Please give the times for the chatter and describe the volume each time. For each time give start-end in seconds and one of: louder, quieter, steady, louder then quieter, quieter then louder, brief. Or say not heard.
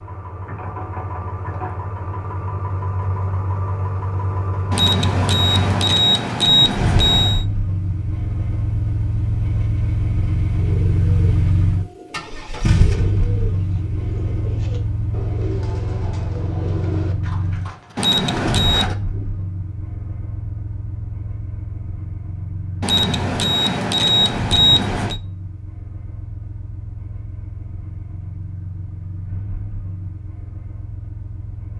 not heard.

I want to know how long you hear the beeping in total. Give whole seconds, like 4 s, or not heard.
6 s.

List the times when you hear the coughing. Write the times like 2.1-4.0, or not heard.
not heard.